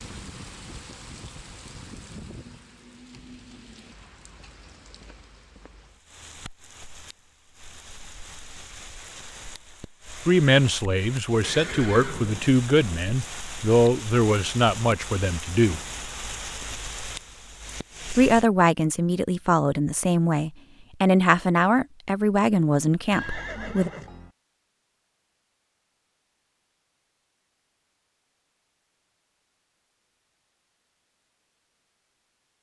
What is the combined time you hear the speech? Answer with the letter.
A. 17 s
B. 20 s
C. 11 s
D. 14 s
C.